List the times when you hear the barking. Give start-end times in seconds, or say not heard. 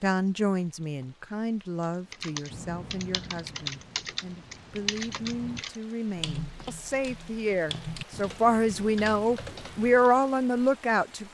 not heard.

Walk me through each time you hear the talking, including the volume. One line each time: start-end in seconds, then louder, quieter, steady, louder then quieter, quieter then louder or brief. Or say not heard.
0.0-11.2 quieter then louder.